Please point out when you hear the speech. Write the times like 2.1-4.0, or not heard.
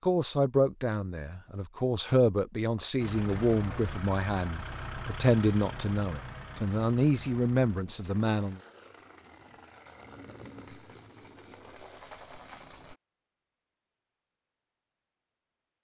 0.0-8.6.